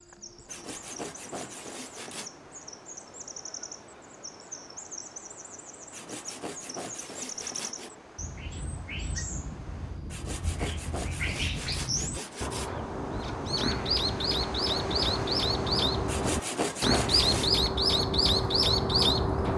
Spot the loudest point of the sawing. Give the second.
17 s.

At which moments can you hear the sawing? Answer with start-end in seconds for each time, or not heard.
0.5-2.3, 5.9-7.9, 10.1-12.7, 16.1-17.6.